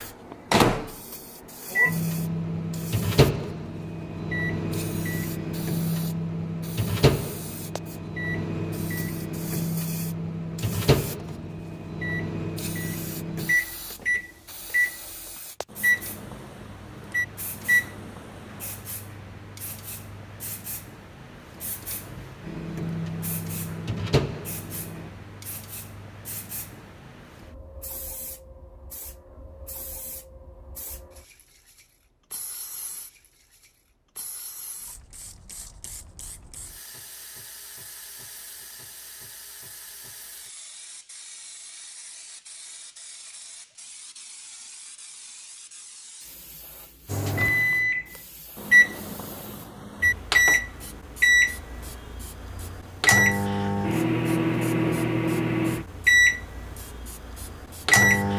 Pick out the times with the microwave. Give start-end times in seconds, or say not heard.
0.0-18.8, 22.4-25.1, 47.0-58.3.